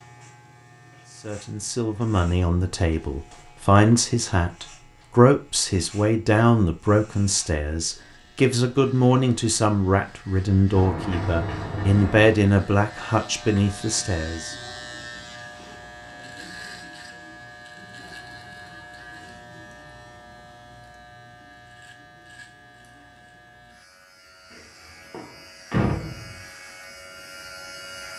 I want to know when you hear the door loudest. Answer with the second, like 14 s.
26 s.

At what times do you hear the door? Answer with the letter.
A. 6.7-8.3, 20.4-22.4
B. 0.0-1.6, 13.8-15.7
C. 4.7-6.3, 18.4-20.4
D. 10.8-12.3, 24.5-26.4
D.